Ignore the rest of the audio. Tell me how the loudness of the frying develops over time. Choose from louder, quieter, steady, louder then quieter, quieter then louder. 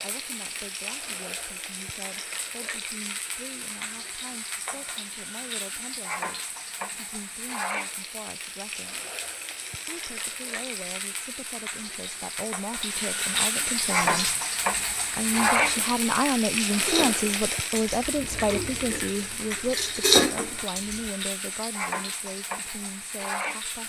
louder then quieter.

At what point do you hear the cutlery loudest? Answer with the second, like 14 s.
20 s.